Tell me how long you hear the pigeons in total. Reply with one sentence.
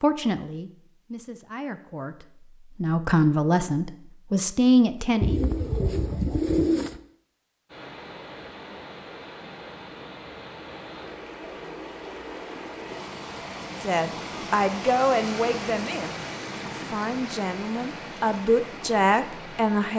The pigeons can be heard for 2 seconds in total.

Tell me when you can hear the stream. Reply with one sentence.
You can hear the stream from 7.7 to 19.9 s.